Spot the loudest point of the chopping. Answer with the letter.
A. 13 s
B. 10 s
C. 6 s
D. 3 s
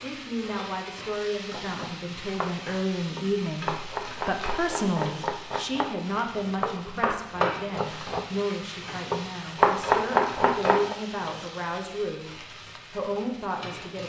B.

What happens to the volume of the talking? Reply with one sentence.
The loudness of the talking stays about the same.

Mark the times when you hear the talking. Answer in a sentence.
The talking can be heard from 0.0 to 14.0 s.